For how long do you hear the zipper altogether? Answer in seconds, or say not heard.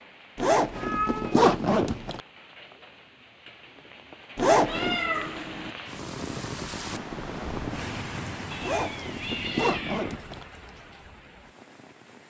4 s.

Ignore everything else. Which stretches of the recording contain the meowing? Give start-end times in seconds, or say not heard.
0.7-1.4, 4.7-5.8, 8.5-10.2.